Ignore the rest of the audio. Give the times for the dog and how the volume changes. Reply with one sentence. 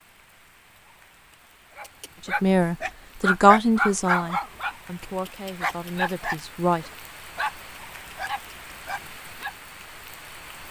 The dog can be heard from 1.8 to 9.5 s, getting quieter.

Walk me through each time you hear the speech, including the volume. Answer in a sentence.
You can hear the speech from 2.2 to 6.8 s, getting louder then quieter.